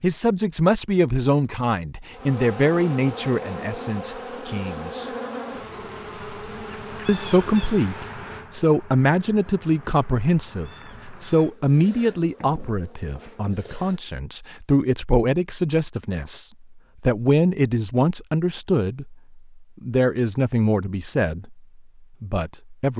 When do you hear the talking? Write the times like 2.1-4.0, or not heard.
0.0-5.0, 7.0-22.9.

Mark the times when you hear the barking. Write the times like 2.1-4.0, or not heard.
not heard.